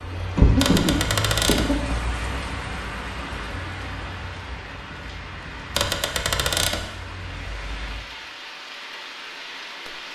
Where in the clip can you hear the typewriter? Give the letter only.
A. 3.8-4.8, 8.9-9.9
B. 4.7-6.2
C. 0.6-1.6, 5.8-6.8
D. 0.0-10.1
C.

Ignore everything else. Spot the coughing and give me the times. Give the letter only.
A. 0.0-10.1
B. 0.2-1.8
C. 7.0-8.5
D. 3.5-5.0
B.